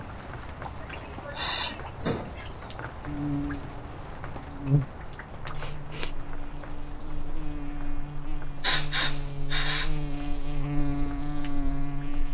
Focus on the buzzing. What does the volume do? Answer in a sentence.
The loudness of the buzzing goes down, then up.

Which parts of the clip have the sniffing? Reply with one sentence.
You can hear the sniffing from 1.1 to 2.5 s, from 5.5 to 6.1 s and from 8.6 to 9.9 s.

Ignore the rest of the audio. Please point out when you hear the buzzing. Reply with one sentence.
You can hear the buzzing from 3.0 to 12.2 s.